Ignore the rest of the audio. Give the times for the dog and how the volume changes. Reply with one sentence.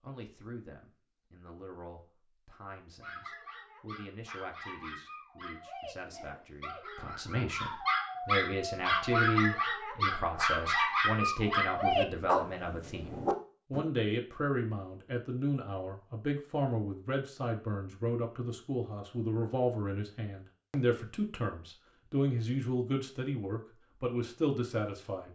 You can hear the dog from 3.0 to 13.8 s, getting louder.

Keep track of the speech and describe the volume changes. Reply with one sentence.
The volume of the speech goes up.